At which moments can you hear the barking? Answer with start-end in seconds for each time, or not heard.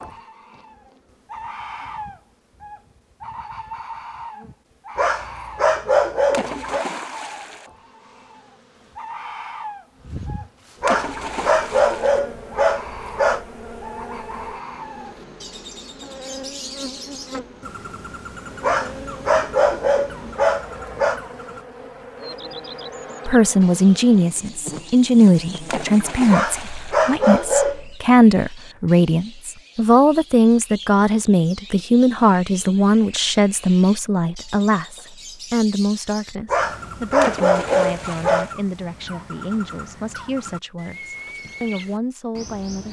5.0-6.8, 10.8-13.4, 18.6-21.2, 26.3-27.9, 36.5-38.5.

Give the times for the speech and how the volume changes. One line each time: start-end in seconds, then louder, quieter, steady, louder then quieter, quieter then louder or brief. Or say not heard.
23.2-42.8 quieter.